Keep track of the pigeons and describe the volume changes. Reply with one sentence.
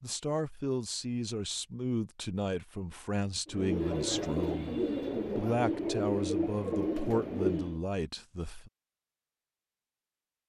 The loudness of the pigeons stays about the same.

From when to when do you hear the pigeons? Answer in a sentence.
The pigeons can be heard from 3.5 to 7.8 s.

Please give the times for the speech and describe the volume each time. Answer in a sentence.
You can hear the speech from 0.0 to 8.7 s, at a steady volume.